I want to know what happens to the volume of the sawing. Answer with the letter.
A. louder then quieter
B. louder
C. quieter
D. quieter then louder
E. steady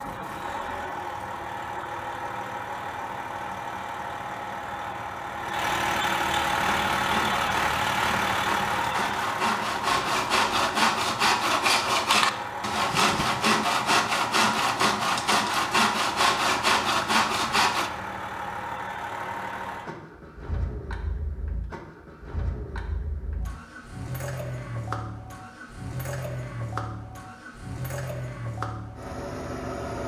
B.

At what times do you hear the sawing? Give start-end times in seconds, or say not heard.
6.5-17.9.